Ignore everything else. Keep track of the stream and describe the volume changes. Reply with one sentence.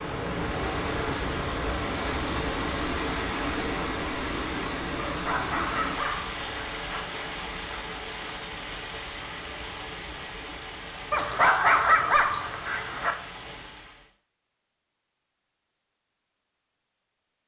The loudness of the stream goes down.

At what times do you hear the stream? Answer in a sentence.
You can hear the stream from 0.0 to 14.1 s.